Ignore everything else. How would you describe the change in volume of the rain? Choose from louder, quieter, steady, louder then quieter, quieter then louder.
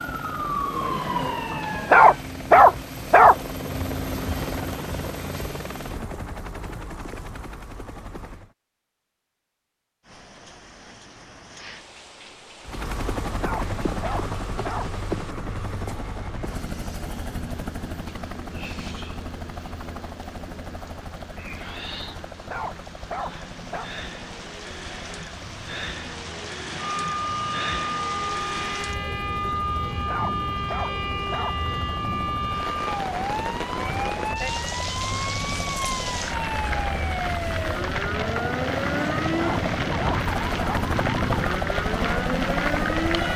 louder.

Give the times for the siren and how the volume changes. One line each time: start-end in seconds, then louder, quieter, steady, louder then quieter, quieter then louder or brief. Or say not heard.
0.0-2.2 brief
26.8-43.3 steady.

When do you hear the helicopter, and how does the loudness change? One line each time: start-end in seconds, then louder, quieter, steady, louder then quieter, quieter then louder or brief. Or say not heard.
0.0-8.6 louder then quieter
12.7-43.3 quieter then louder.